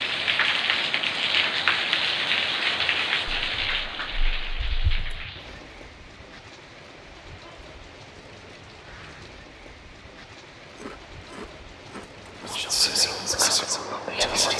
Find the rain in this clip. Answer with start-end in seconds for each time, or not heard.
0.0-14.2.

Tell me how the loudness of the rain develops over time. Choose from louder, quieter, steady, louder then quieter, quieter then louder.
quieter.